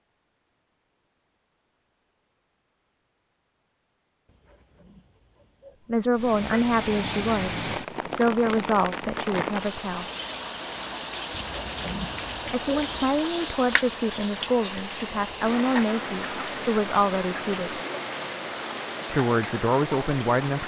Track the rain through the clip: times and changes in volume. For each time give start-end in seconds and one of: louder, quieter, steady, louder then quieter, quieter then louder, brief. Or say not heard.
6.1-20.6 steady.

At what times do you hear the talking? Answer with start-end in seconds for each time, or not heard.
5.8-10.1, 12.5-17.8, 19.1-20.6.